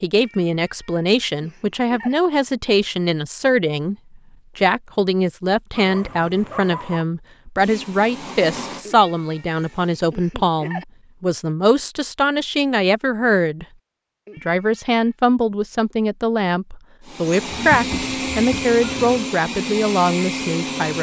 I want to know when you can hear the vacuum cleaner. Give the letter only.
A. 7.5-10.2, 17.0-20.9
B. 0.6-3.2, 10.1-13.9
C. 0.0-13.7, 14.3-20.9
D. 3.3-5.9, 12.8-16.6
A.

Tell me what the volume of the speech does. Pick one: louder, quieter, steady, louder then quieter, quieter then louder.
steady.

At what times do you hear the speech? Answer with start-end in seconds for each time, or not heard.
0.0-13.7, 14.3-20.9.